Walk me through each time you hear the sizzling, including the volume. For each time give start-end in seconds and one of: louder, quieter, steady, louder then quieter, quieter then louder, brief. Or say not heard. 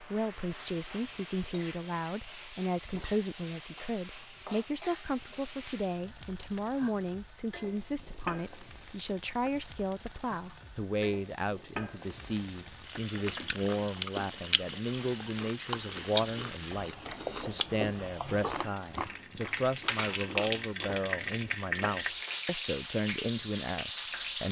0.0-24.4 louder.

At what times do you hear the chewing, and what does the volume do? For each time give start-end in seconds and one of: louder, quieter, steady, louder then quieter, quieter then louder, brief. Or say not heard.
13.1-20.9 quieter.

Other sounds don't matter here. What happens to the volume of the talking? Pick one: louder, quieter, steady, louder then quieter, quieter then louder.
steady.